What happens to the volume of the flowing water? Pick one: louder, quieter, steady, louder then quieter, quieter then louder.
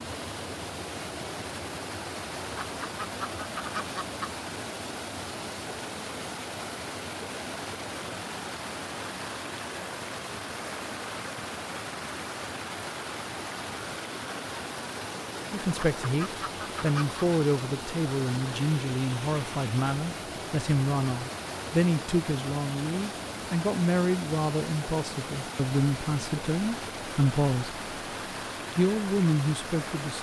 steady.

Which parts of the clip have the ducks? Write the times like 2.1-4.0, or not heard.
2.5-4.3, 15.7-17.2.